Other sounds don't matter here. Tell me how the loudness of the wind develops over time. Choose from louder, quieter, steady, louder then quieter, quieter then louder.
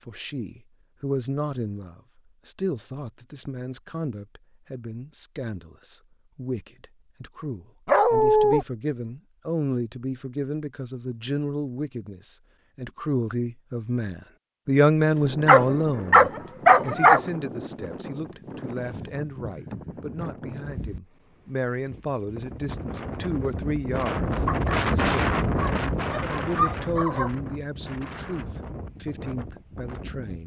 louder then quieter.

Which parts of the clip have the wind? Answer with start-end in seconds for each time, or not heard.
15.1-30.4.